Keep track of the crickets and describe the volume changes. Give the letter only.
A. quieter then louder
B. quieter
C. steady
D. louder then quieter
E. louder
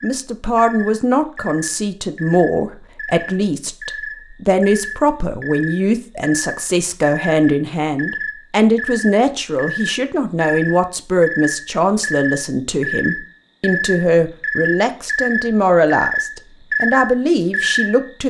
E.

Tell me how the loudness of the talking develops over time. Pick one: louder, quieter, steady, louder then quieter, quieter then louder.
steady.